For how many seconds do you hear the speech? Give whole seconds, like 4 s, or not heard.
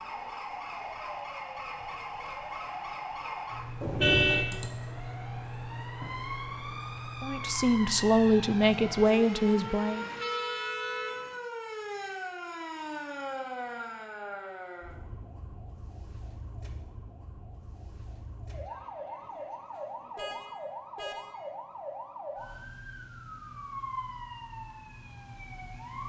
3 s.